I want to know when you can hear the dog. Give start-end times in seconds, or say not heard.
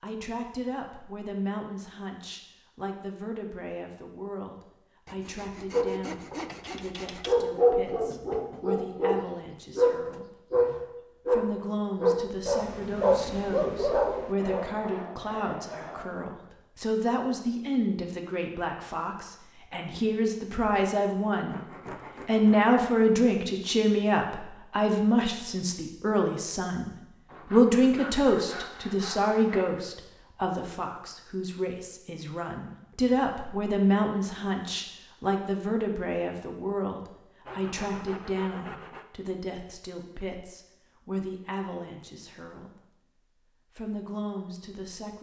5.7-14.7.